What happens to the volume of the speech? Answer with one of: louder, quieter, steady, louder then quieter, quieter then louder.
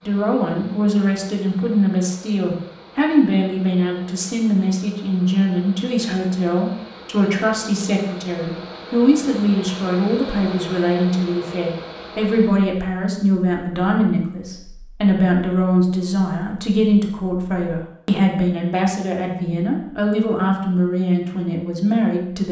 steady.